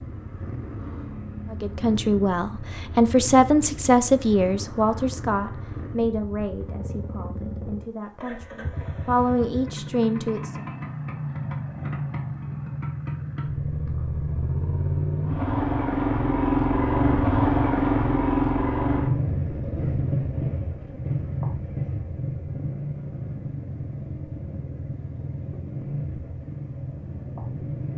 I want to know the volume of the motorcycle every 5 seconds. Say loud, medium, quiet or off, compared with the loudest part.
quiet, quiet, medium, loud, medium, medium.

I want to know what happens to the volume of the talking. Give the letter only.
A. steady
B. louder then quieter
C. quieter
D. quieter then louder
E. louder
D.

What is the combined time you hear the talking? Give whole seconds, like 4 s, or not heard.
9 s.